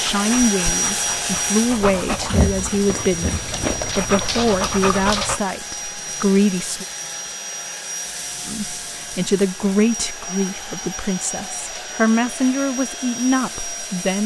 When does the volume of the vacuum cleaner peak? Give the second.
1 s.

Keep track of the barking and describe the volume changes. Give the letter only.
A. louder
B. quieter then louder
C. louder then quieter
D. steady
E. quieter
A.